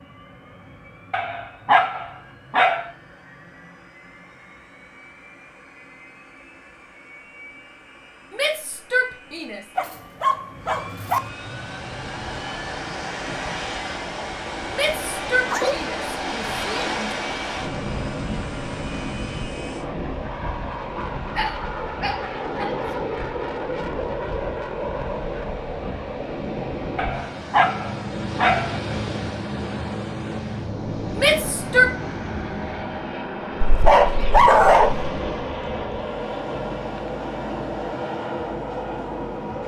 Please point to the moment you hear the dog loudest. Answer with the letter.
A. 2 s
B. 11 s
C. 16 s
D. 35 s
D.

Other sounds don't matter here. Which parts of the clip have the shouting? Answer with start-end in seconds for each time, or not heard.
8.3-9.6, 14.7-17.2, 31.1-31.9.